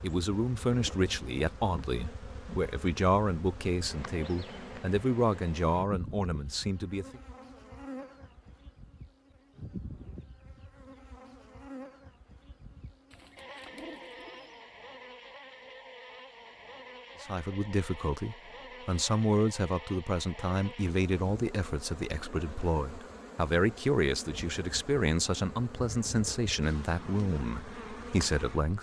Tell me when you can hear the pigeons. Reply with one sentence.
The pigeons can be heard from 13.1 to 14.7 s.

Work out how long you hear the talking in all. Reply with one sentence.
You can hear the talking for 19 seconds altogether.